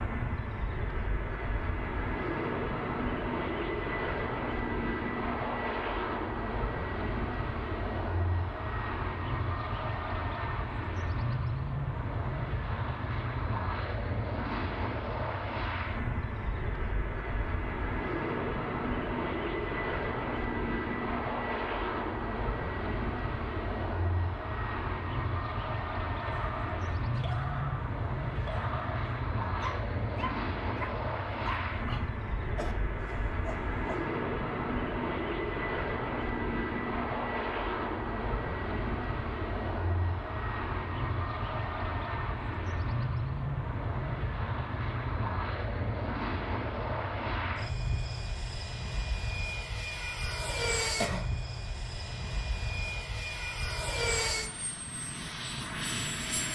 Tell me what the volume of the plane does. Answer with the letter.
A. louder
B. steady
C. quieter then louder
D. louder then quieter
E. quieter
B.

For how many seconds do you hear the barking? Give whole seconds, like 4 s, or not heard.
8 s.